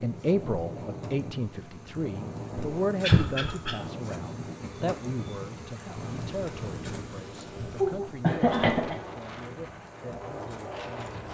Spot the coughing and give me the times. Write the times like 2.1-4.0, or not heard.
2.5-3.8, 7.8-8.9.